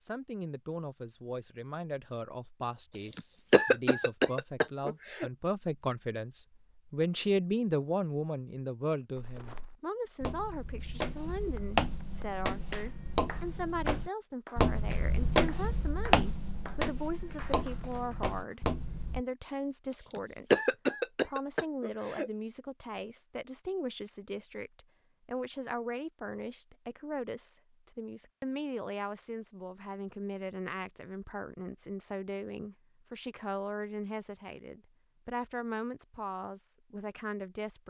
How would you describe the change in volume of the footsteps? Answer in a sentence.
The loudness of the footsteps goes up, then down.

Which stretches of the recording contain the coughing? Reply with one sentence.
The coughing can be heard from 3.1 to 5.3 s and from 20.1 to 22.3 s.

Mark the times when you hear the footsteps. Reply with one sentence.
The footsteps can be heard from 9.2 to 19.2 s.